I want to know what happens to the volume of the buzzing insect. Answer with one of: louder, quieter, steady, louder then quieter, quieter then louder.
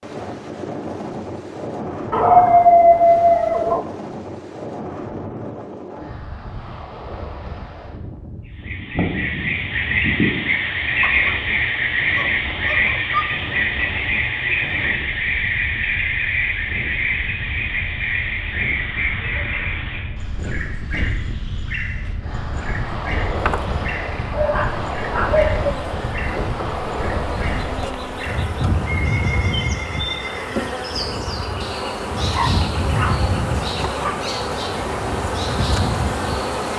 louder.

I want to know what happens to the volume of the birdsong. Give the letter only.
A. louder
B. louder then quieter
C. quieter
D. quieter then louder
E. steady
C.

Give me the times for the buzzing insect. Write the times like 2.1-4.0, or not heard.
23.4-36.7.